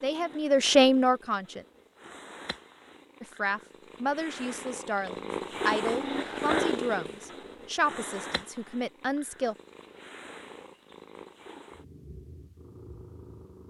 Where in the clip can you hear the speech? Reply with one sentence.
The speech can be heard from 0.0 to 1.6 s and from 3.2 to 9.6 s.